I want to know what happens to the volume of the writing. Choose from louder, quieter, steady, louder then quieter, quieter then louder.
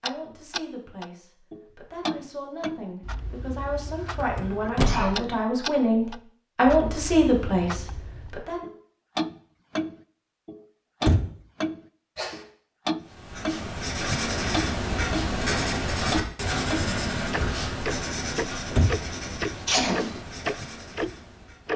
quieter.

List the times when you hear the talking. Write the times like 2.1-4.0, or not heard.
0.0-8.7.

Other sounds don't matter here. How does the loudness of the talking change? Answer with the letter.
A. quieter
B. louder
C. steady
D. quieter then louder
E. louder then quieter
B.